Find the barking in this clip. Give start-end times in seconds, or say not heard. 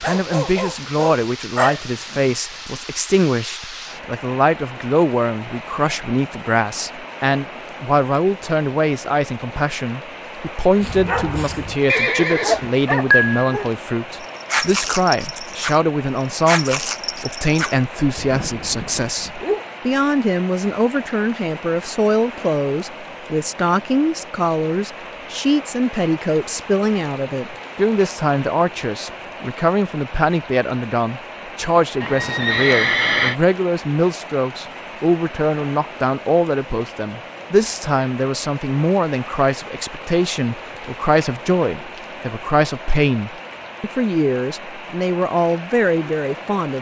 0.0-2.4, 10.8-11.8, 12.4-15.8, 16.4-19.6.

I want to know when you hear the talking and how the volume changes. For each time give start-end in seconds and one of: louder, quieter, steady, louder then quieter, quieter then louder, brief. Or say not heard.
0.0-46.7 steady.